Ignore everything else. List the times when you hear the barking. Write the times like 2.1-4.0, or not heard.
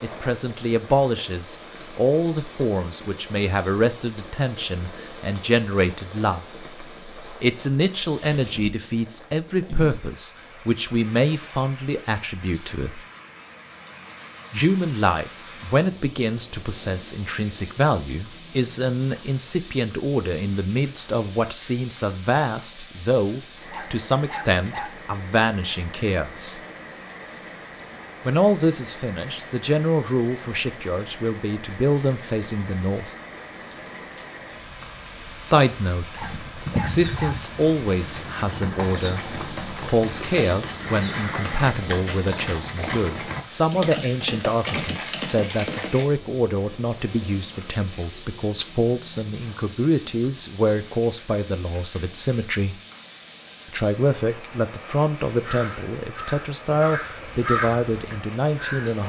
23.7-24.9, 36.1-37.4.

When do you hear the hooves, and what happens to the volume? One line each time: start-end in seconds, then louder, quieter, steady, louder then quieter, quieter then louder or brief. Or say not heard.
36.2-46.0 steady.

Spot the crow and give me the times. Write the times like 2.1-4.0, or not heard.
55.4-59.0.